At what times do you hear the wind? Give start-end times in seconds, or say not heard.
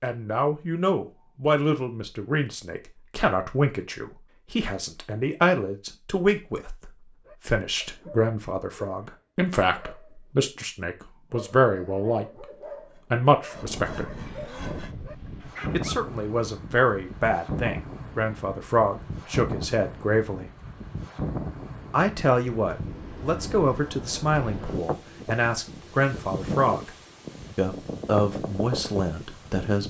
13.5-29.8.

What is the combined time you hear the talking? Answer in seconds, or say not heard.
26 s.